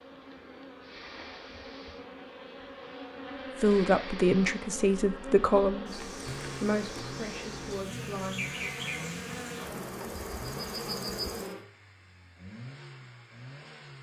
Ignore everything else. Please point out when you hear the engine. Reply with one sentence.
The engine can be heard from 6.2 to 13.9 s.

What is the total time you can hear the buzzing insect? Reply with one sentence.
The buzzing insect can be heard for 12 seconds in total.